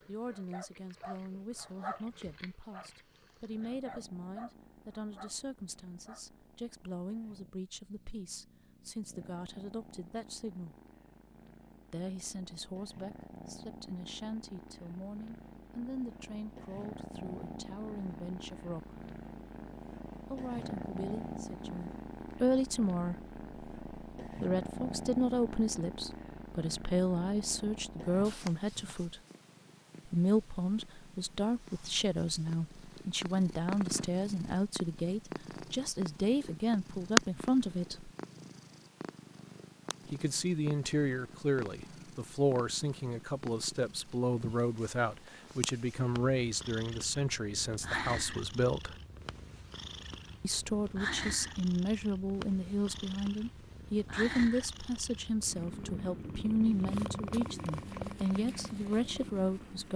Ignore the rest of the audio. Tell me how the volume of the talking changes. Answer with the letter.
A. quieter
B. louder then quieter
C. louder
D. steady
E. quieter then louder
C.